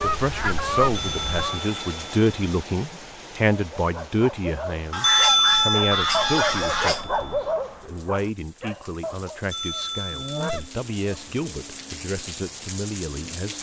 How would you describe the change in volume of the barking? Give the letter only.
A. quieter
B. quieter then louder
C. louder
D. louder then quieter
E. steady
D.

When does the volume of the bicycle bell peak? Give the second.
5 s.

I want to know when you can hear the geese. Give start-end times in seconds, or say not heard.
0.0-1.6, 4.9-7.0, 9.7-11.2.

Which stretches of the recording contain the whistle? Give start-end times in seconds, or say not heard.
not heard.